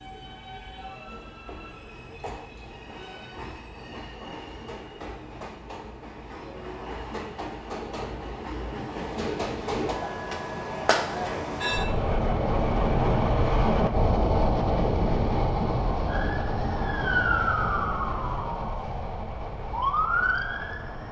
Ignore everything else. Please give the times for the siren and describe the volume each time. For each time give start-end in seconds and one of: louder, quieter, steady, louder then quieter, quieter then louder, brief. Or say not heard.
16.1-21.0 quieter then louder.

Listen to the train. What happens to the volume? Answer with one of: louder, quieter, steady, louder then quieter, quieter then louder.
louder then quieter.